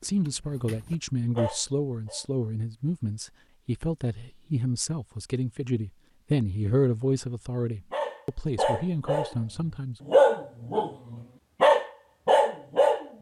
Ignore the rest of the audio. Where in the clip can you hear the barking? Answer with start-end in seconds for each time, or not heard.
0.0-2.2, 7.9-13.1.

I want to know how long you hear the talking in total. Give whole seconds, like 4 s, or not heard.
10 s.